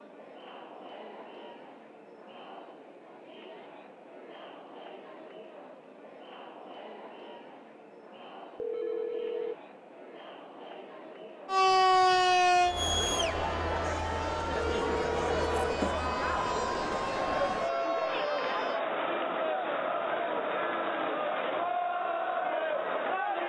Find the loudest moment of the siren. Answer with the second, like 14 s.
12 s.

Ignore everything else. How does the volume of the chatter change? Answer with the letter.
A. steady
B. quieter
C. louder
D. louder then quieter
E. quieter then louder
C.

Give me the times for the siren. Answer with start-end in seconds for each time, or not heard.
11.4-18.8.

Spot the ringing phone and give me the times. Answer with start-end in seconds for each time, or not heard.
8.6-9.6, 14.6-15.8.